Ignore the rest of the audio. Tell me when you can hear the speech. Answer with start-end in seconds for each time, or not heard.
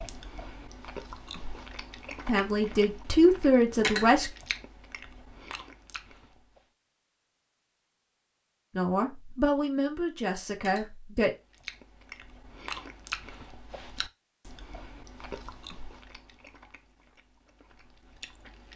2.2-4.3, 8.8-11.3.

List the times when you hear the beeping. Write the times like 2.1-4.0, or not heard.
not heard.